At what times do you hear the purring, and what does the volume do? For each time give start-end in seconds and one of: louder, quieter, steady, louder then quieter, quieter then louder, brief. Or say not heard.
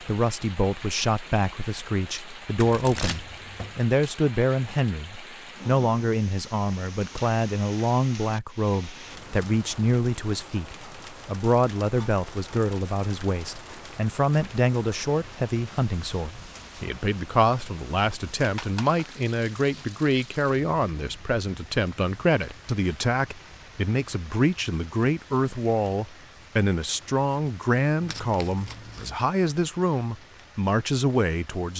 not heard.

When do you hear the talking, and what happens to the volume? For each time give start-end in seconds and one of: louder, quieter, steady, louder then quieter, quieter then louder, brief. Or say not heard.
0.0-31.7 steady.